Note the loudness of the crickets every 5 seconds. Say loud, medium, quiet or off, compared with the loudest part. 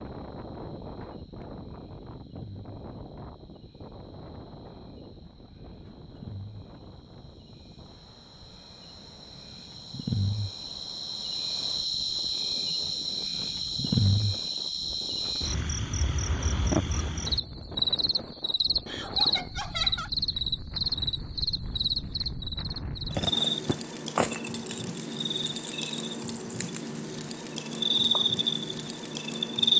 quiet, quiet, loud, loud, loud, loud.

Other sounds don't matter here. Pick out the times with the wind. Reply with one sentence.
You can hear the wind from 0.0 to 29.7 s.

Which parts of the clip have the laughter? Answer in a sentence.
The laughter can be heard from 18.9 to 20.1 s.